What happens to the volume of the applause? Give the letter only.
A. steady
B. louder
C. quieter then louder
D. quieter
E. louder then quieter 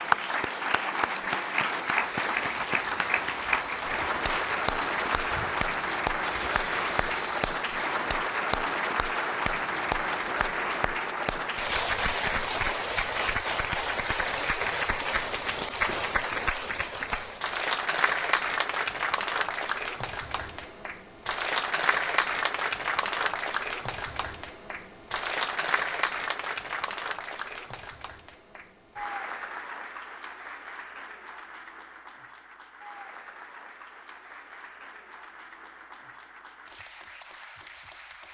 D.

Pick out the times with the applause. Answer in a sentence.
The applause can be heard from 0.0 to 38.2 s.